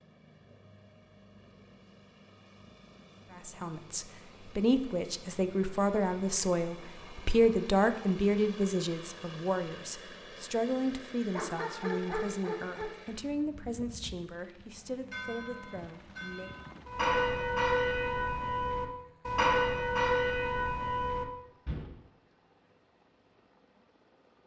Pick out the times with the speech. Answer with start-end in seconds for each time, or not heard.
3.3-16.6.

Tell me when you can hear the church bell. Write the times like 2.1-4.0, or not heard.
14.6-21.9.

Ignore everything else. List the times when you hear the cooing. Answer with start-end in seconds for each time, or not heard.
not heard.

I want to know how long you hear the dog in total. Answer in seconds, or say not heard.
2 s.